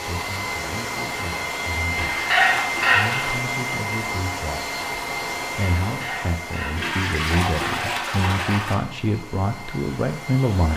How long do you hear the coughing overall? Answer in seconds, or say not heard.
2 s.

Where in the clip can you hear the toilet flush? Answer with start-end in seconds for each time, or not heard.
1.9-3.3, 6.8-8.8.